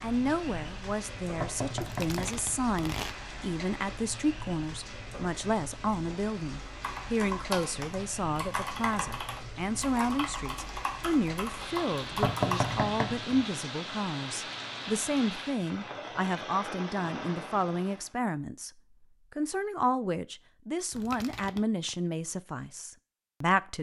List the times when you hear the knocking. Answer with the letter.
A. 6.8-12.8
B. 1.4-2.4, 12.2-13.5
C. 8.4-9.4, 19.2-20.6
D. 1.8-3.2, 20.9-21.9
B.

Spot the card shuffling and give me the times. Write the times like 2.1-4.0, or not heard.
1.8-3.2, 20.9-21.9.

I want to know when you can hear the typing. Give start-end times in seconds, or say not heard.
6.8-12.8.